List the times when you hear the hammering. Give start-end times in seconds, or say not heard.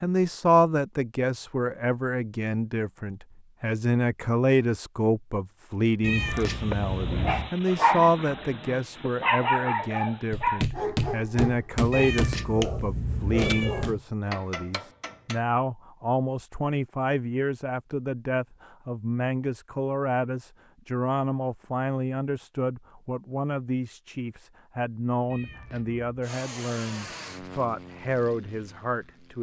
10.3-15.4.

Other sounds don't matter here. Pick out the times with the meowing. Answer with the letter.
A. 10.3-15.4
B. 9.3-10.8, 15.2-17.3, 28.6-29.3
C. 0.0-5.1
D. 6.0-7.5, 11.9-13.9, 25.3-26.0
D.